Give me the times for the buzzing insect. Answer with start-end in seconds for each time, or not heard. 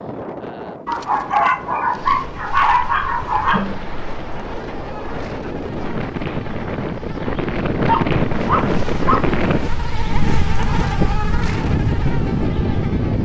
2.0-13.2.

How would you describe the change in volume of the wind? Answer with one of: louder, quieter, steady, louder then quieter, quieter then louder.
louder.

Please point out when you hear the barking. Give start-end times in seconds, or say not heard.
0.8-3.9, 7.8-9.2.